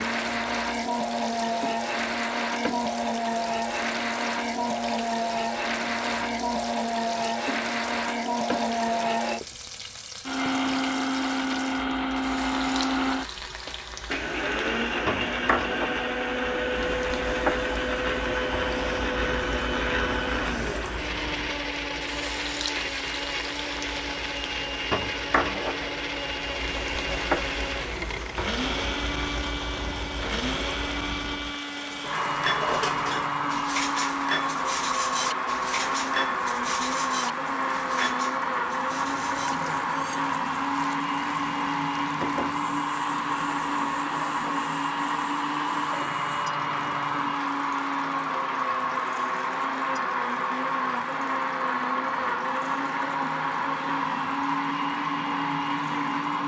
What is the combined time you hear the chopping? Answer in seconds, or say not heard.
not heard.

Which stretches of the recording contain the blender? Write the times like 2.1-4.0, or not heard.
0.0-56.4.